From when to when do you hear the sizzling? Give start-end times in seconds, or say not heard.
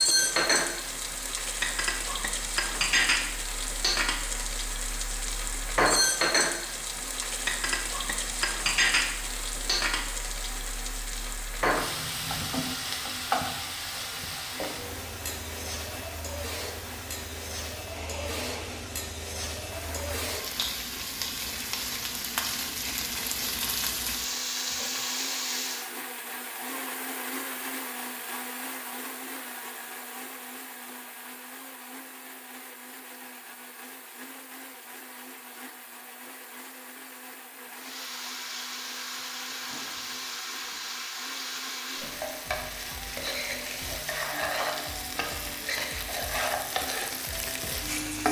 0.0-25.9, 37.8-48.2.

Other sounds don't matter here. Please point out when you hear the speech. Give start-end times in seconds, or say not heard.
not heard.